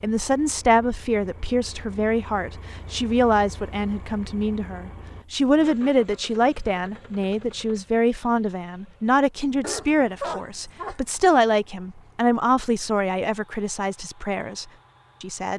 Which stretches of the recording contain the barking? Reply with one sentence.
The barking can be heard from 9.6 to 11.0 s.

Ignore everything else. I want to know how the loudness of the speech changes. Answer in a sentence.
The loudness of the speech stays about the same.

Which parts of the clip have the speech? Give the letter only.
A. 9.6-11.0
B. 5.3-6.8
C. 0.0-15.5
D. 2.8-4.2
C.